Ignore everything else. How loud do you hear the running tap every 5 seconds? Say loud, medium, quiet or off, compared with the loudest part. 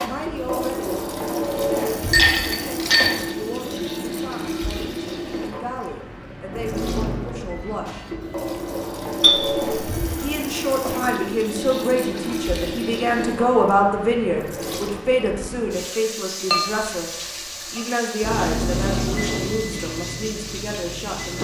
loud, loud, loud, medium, medium.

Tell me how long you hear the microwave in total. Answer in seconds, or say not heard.
6 s.